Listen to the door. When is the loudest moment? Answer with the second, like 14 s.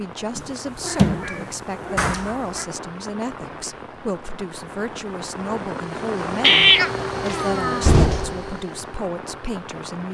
8 s.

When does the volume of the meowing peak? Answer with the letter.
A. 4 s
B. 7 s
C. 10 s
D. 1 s
B.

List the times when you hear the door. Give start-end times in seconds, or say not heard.
1.9-2.5, 7.2-8.4.